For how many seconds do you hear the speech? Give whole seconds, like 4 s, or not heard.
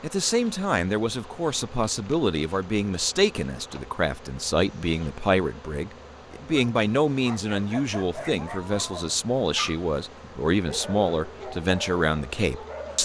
13 s.